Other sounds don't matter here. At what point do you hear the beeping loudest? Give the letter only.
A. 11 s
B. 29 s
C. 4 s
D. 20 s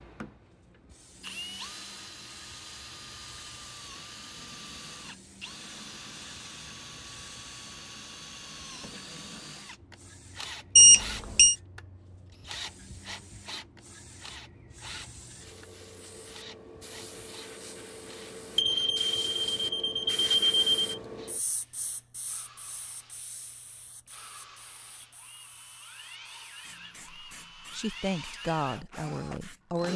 A.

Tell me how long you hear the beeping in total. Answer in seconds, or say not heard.
3 s.